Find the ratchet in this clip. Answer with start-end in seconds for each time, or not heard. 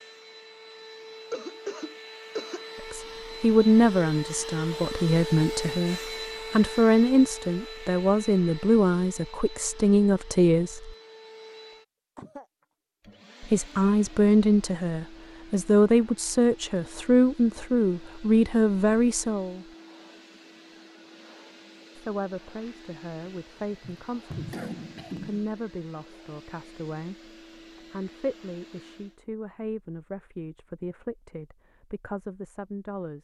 not heard.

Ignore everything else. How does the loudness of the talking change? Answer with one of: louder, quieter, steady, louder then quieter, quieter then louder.
quieter.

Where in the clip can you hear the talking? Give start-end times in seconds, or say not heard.
2.9-10.9, 13.4-19.8, 21.9-27.3, 27.9-33.1.